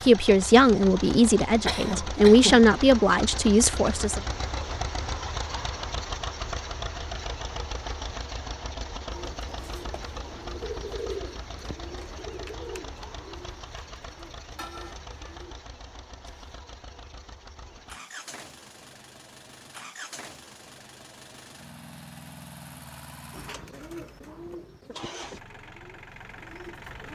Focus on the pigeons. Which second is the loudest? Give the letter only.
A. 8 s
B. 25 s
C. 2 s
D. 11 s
D.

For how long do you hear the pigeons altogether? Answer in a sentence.
The pigeons can be heard for 10 seconds in total.